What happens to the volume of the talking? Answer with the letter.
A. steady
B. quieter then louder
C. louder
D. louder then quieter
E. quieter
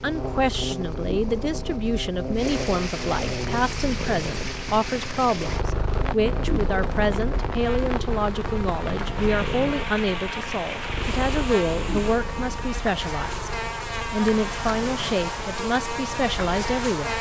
A.